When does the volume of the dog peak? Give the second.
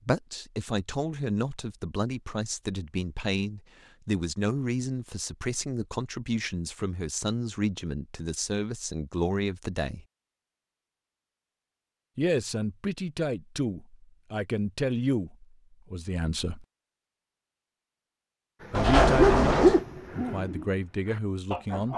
20 s.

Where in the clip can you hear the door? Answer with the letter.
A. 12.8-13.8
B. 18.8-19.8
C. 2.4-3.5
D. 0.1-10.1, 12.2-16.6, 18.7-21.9
B.